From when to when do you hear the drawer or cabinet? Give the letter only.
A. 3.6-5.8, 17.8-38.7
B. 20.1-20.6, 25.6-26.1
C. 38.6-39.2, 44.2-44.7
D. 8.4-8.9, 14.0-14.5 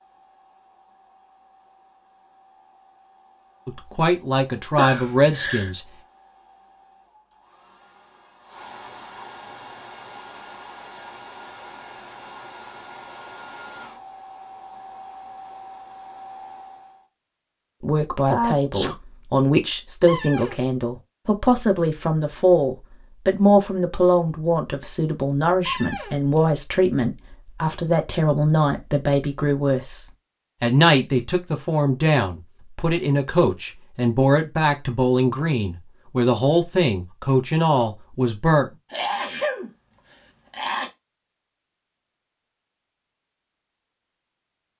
B.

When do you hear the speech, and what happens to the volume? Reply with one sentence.
You can hear the speech briefly from 3.6 to 5.8 s; and from 17.8 to 38.7 s, at a steady volume.